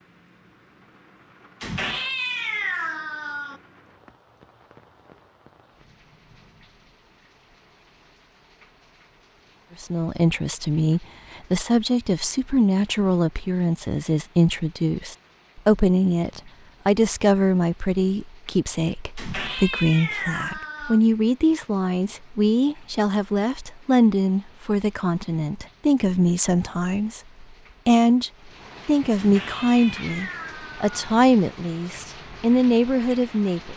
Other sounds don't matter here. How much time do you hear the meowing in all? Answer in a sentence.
You can hear the meowing for 6 seconds altogether.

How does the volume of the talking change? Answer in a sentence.
The loudness of the talking stays about the same.